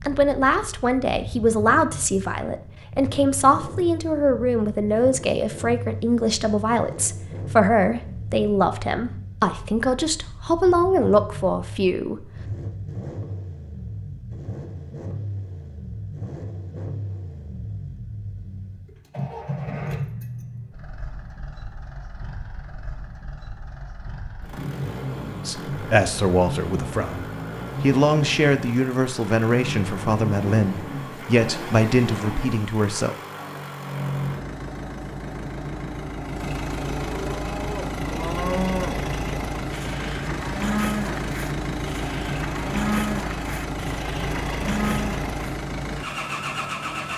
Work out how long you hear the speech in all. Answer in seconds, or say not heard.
20 s.